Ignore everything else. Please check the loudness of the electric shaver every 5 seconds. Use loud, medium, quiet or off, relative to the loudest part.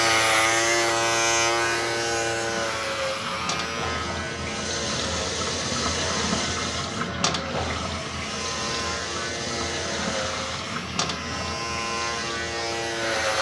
loud, medium, medium.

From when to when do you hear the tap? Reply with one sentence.
You can hear the tap from 0.1 to 13.3 s.